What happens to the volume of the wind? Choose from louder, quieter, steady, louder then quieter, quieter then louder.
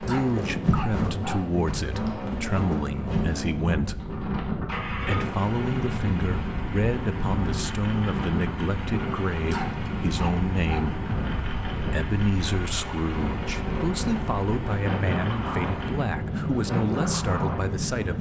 steady.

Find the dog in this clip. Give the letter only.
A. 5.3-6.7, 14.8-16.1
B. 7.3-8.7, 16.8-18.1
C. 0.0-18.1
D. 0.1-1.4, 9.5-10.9
D.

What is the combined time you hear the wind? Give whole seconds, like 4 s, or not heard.
18 s.